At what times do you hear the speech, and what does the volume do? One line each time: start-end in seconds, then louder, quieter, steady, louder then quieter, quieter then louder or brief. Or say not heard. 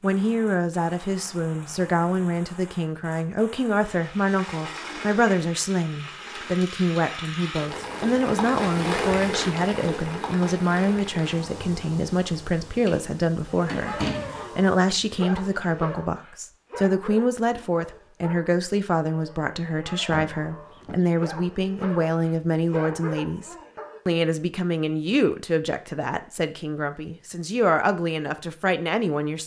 0.0-29.4 steady.